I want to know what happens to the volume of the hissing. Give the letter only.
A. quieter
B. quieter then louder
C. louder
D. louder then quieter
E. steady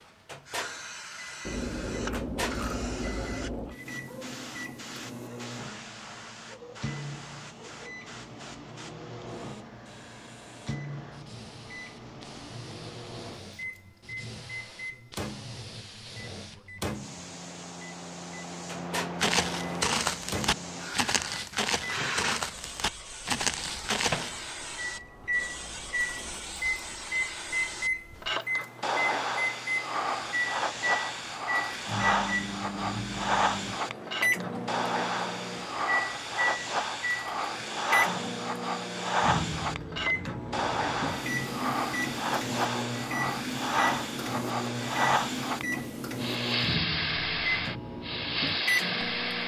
C.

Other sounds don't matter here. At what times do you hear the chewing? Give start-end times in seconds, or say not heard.
1.4-3.8.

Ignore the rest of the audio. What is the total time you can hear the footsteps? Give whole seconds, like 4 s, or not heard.
5 s.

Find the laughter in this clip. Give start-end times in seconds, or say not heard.
not heard.